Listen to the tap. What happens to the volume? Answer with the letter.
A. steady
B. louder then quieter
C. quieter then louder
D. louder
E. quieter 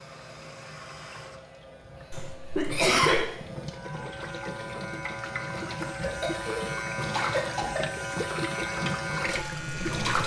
D.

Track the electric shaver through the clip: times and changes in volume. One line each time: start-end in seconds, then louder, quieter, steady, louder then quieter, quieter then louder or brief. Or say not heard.
0.0-10.2 louder.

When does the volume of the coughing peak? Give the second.
3 s.